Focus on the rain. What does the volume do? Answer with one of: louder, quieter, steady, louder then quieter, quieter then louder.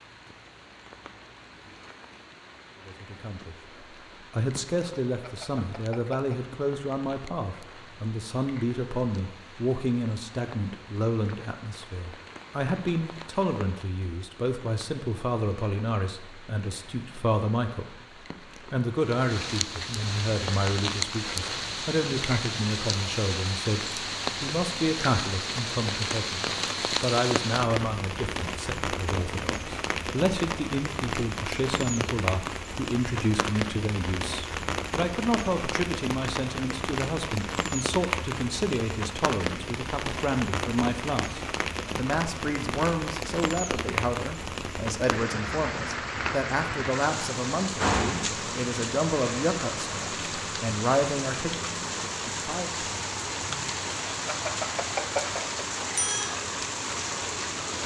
louder.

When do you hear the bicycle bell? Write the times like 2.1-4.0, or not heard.
5.2-6.5, 54.2-56.3.